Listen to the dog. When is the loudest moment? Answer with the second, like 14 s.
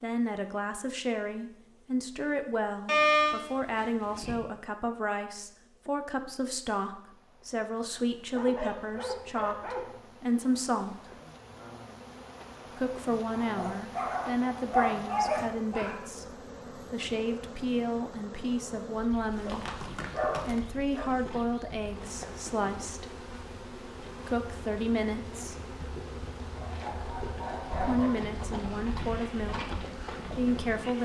3 s.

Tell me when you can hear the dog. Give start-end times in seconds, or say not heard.
2.9-4.3, 8.3-9.9, 13.4-16.0, 19.4-21.1, 26.1-28.1.